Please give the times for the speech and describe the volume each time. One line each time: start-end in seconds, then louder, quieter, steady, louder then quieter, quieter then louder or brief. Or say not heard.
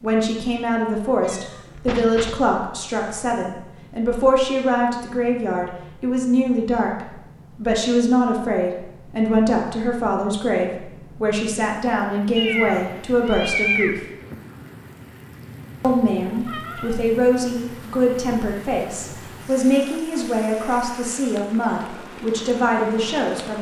0.0-14.0 steady
15.8-23.5 steady.